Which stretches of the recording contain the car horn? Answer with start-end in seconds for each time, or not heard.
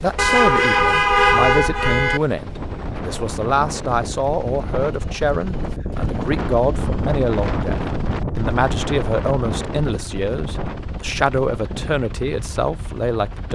0.1-2.2.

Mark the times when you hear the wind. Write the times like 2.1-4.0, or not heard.
2.3-13.5.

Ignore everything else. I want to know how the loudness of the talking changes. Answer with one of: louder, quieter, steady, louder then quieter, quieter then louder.
steady.